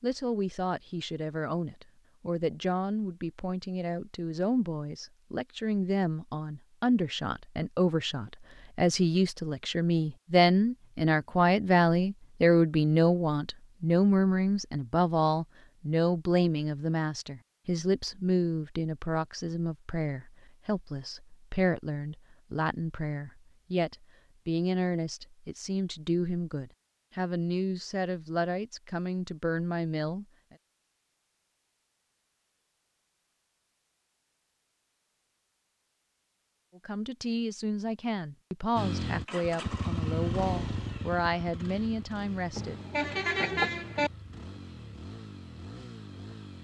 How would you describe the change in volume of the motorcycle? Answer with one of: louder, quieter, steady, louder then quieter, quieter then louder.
quieter.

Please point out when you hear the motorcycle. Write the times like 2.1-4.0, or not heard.
38.8-46.5.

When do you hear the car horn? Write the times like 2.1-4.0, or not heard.
42.5-44.1.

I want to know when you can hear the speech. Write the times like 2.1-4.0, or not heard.
0.0-30.2, 36.8-42.8.